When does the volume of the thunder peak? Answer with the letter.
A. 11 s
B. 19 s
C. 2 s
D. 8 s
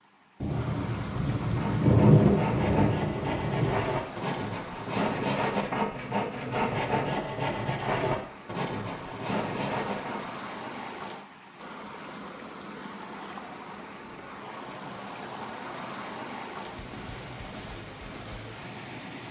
C.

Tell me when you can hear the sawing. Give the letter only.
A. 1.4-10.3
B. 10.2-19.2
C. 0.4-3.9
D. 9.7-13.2
A.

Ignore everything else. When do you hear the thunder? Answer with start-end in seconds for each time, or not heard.
0.4-3.9.